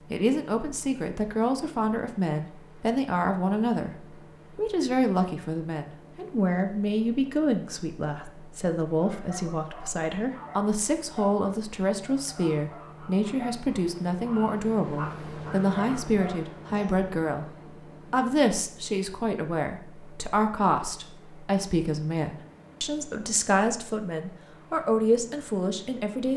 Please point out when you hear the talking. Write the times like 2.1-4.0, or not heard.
0.1-17.4, 18.1-26.3.